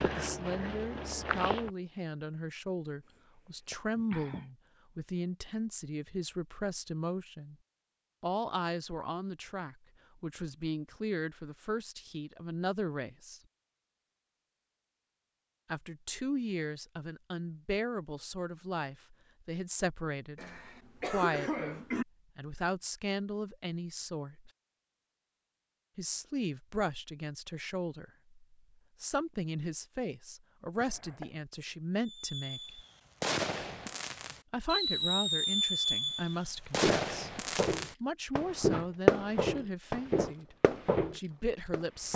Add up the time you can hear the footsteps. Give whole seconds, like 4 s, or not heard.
7 s.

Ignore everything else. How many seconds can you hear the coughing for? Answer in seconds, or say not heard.
4 s.